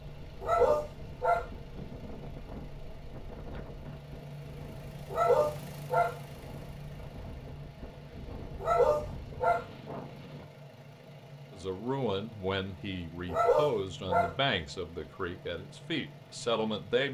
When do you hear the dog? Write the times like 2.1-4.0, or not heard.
0.4-1.5, 5.1-6.2, 8.6-9.7, 13.2-14.4.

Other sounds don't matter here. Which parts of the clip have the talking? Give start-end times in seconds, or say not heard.
11.5-17.0.